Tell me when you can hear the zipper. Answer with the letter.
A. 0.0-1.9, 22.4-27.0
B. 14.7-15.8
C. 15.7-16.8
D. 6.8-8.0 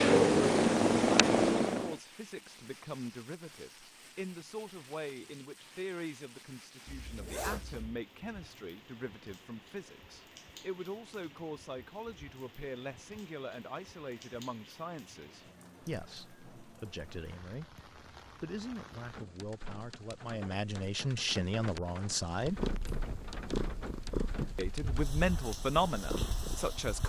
D.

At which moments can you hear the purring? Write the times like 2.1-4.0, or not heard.
0.0-1.9, 22.4-27.0.